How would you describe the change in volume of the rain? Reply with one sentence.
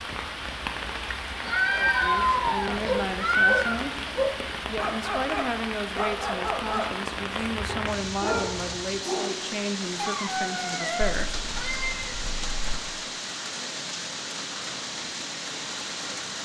The loudness of the rain stays about the same.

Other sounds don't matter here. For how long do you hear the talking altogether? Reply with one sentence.
You can hear the talking for 10 seconds altogether.